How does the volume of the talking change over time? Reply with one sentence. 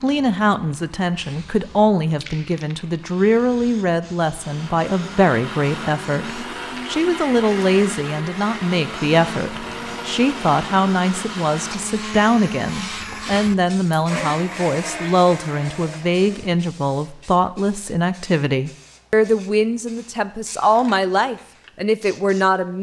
The volume of the talking stays about the same.